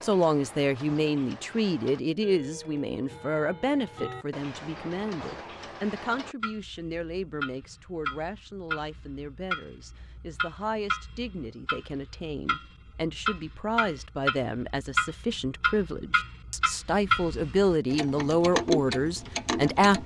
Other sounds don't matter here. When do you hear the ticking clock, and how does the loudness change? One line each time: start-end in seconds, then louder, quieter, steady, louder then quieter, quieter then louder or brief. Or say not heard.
0.0-20.0 louder.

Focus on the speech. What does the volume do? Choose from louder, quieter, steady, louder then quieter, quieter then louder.
quieter then louder.